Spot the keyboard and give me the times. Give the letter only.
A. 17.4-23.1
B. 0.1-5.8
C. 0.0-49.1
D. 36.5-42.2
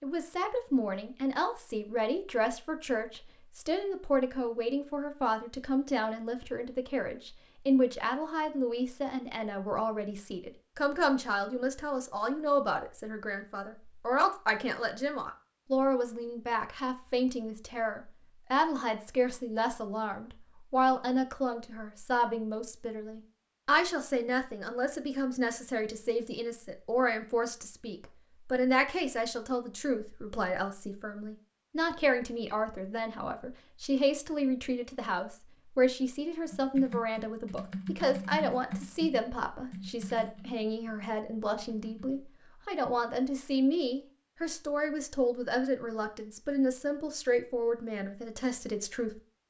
D.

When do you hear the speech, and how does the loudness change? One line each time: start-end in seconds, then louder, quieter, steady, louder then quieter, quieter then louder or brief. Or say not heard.
0.0-49.1 steady.